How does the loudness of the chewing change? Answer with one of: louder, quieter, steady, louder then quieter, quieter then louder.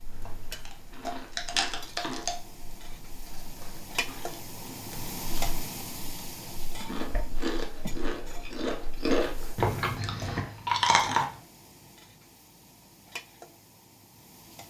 quieter then louder.